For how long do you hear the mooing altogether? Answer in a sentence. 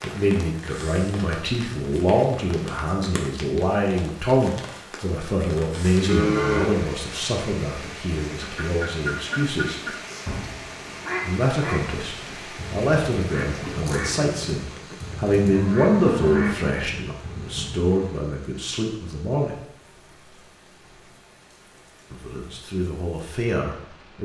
You can hear the mooing for 2 seconds altogether.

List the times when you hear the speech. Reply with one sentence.
You can hear the speech from 0.0 to 9.8 s, from 11.2 to 19.6 s and from 22.1 to 24.2 s.